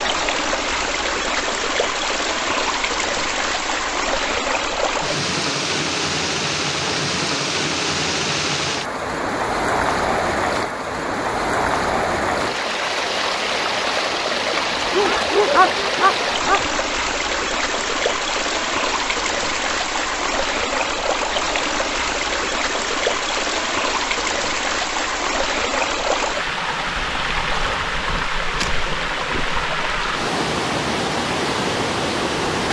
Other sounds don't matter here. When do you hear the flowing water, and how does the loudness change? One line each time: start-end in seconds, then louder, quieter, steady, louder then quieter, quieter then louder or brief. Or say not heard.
0.0-32.6 steady.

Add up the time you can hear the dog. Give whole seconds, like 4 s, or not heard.
2 s.